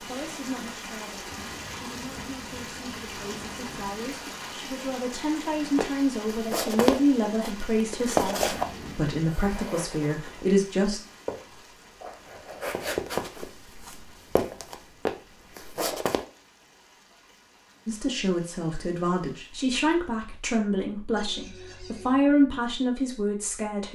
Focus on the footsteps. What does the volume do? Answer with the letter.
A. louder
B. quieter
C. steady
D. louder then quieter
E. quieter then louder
E.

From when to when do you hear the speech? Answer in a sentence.
The speech can be heard from 0.0 to 11.0 s and from 17.9 to 23.8 s.